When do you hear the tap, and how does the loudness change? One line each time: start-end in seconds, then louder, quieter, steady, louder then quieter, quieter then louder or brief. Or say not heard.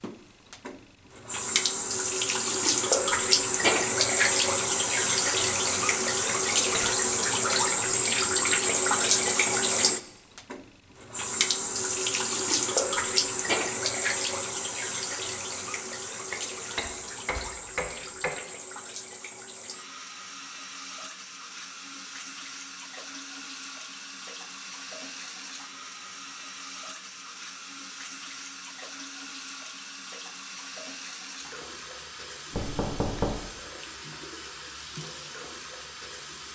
0.0-36.5 quieter.